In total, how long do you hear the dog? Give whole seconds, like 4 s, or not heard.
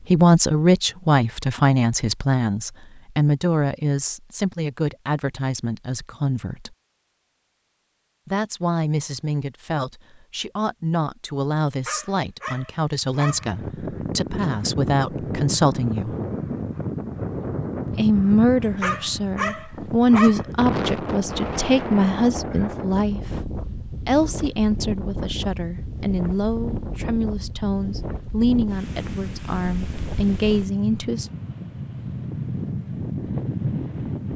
3 s.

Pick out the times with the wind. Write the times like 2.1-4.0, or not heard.
13.2-34.3.